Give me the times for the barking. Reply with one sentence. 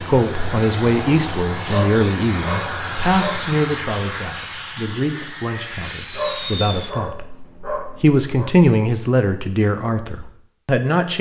You can hear the barking from 1.6 to 3.5 s and from 6.1 to 8.6 s.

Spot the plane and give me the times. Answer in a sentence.
You can hear the plane from 0.0 to 6.9 s.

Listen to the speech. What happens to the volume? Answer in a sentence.
The loudness of the speech goes down, then up.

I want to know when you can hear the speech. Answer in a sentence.
You can hear the speech from 0.0 to 11.1 s.